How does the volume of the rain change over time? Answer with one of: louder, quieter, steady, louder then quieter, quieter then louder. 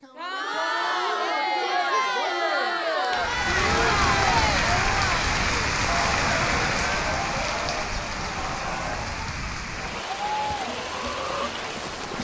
quieter.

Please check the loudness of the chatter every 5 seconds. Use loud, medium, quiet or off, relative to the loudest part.
loud, medium, medium.